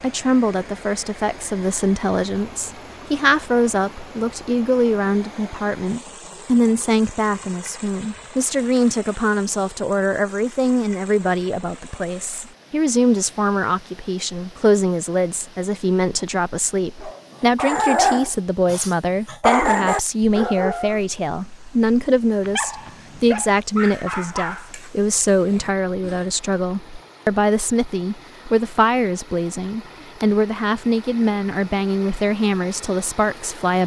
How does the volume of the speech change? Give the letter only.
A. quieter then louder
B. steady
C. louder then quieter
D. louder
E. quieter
B.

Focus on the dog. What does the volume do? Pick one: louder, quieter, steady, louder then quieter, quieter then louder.
quieter.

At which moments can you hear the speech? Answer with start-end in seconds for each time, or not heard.
0.0-33.8.